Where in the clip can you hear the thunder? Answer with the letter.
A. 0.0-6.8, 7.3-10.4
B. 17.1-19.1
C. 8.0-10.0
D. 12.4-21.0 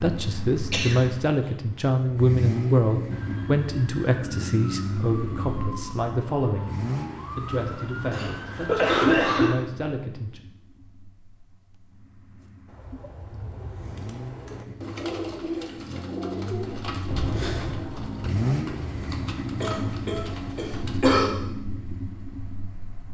B.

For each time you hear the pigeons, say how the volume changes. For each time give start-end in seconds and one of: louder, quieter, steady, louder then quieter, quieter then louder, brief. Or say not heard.
12.4-21.0 louder then quieter.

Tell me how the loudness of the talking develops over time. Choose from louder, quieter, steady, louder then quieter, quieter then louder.
quieter.